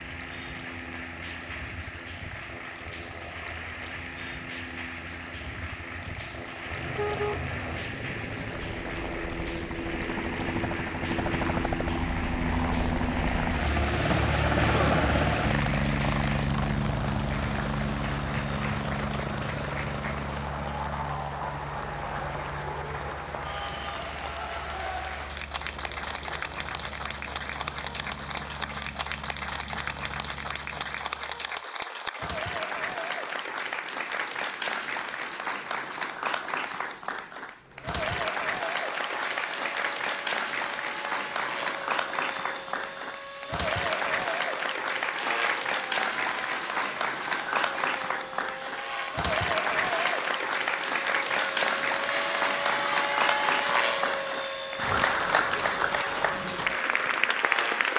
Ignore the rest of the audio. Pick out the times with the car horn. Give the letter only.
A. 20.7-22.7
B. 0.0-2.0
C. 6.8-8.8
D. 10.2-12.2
C.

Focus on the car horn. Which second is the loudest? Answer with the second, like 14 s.
7 s.